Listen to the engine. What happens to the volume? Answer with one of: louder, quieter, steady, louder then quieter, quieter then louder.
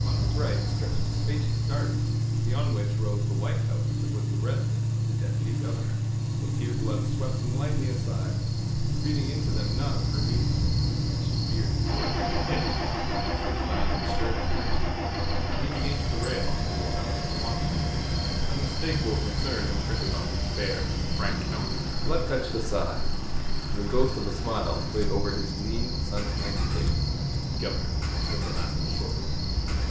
quieter.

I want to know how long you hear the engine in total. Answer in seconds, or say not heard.
30 s.